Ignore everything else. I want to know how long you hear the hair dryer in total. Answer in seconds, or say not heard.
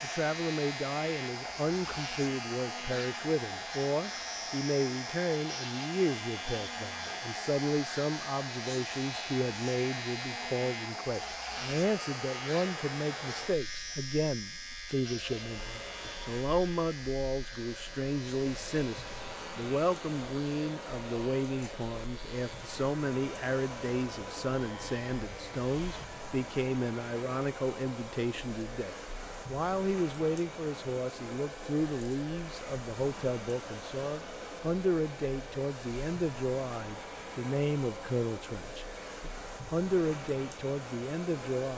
42 s.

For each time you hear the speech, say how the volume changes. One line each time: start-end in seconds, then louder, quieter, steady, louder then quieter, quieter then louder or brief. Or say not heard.
0.0-41.7 steady.